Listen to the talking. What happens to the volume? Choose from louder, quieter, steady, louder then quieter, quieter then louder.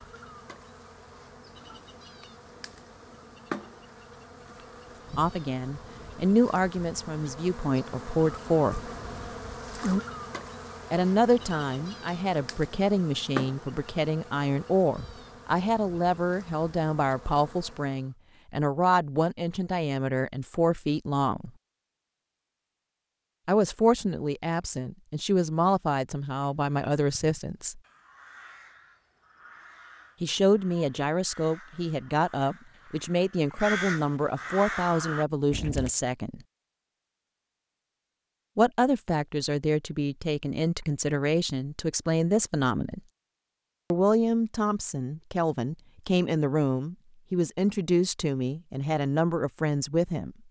steady.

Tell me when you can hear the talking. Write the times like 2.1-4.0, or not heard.
5.2-8.8, 10.9-21.5, 23.4-27.8, 30.2-36.4, 38.5-43.0, 43.9-50.4.